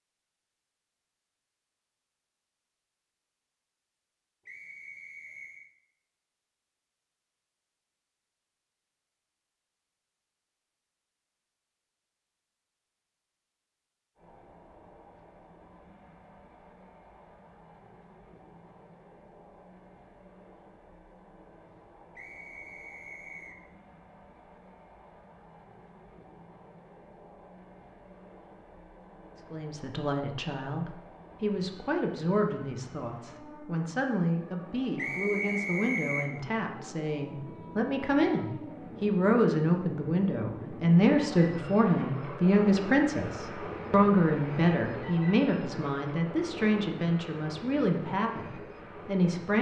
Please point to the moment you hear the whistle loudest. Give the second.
36 s.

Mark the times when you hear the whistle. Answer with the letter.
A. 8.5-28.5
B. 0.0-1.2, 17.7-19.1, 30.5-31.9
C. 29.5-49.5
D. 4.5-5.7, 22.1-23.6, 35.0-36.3
D.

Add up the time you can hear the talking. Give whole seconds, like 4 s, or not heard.
20 s.